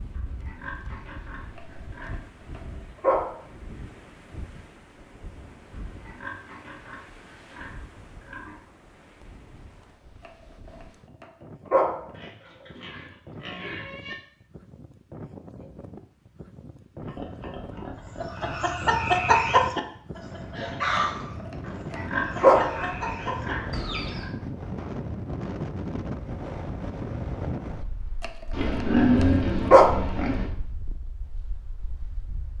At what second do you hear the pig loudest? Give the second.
29 s.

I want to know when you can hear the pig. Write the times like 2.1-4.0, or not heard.
0.1-2.3, 5.7-8.6, 12.1-14.2, 17.0-18.6, 21.6-24.3, 28.5-30.5.